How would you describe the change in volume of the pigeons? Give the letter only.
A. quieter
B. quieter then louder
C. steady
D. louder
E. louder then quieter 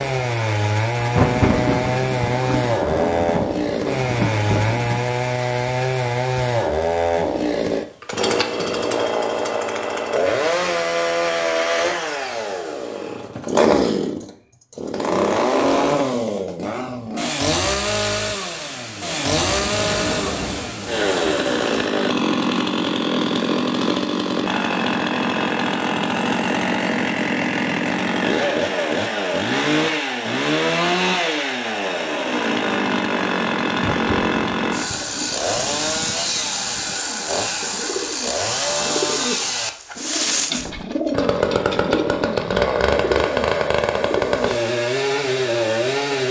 D.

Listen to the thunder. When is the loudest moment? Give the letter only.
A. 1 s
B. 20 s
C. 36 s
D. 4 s
A.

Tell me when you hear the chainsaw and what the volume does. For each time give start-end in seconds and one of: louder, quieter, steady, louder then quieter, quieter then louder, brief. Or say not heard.
0.0-46.2 steady.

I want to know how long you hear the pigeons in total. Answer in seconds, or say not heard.
8 s.